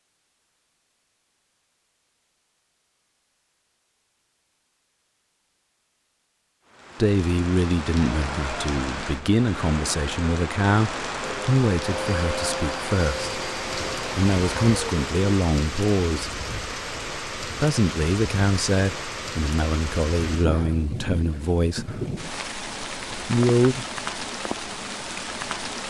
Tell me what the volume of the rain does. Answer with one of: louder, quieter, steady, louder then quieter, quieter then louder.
steady.